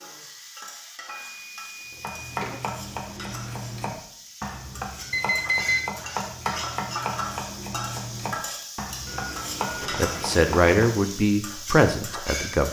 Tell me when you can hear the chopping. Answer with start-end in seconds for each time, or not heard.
1.9-10.8.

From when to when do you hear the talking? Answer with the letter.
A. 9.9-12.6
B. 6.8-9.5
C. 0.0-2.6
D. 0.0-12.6
A.